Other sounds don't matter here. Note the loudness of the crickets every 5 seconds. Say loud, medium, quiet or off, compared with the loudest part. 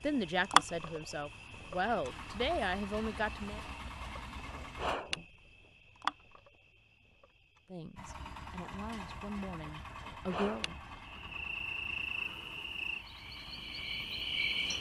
loud, medium, loud.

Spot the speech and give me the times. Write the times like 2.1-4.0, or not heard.
0.0-3.6, 7.7-10.7.